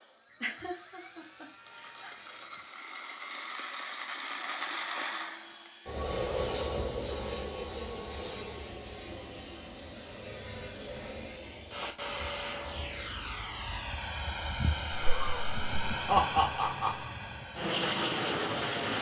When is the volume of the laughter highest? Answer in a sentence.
The loudest moment of the laughter is at 16 seconds.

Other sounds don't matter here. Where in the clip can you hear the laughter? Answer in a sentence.
The laughter can be heard from 0.4 to 2.1 s and from 14.9 to 17.1 s.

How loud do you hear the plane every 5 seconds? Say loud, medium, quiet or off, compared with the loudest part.
medium, loud, loud, loud.